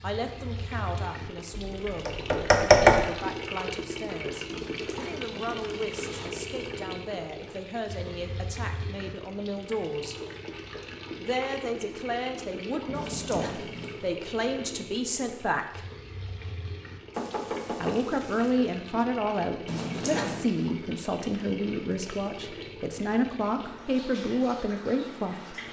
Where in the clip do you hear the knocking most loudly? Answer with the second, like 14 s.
3 s.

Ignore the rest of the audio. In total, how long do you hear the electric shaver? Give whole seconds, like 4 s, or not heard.
not heard.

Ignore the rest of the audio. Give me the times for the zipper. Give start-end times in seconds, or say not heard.
4.5-6.5, 12.9-14.0, 19.6-20.4.